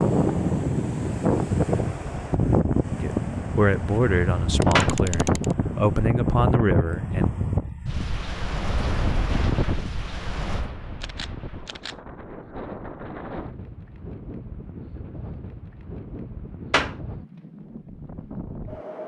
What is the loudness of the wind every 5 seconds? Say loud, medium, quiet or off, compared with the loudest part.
loud, loud, quiet, quiet.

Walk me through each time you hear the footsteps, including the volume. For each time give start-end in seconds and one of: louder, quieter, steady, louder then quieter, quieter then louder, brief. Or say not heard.
not heard.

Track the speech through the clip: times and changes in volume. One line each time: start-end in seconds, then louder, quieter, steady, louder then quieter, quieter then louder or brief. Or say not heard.
3.0-7.3 quieter then louder.